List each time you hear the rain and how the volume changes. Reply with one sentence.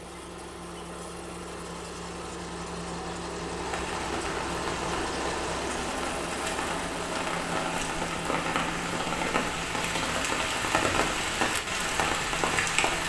The rain can be heard from 3.5 to 13.0 s, getting louder.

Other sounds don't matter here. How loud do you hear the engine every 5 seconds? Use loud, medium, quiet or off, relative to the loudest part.
loud, loud, medium.